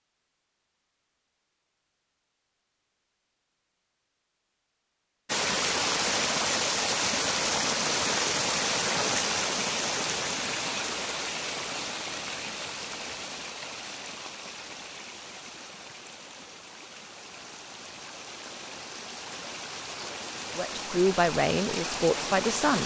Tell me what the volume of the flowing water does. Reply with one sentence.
The volume of the flowing water goes down, then up.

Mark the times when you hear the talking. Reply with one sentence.
You can hear the talking from 20.6 to 22.8 s.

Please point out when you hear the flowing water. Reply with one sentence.
The flowing water can be heard from 5.2 to 22.8 s.